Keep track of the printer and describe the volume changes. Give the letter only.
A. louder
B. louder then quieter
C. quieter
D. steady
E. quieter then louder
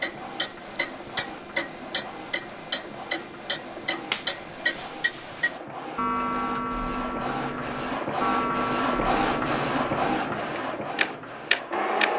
A.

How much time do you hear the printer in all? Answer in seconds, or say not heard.
12 s.